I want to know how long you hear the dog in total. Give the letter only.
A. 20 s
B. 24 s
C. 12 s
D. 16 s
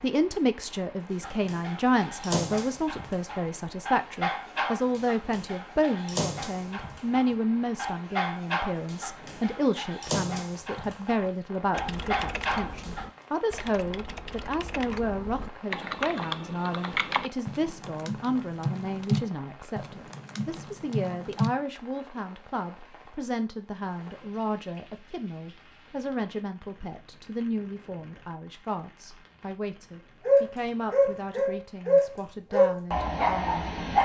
D.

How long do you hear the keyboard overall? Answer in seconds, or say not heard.
10 s.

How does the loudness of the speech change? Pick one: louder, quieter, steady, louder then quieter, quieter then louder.
quieter.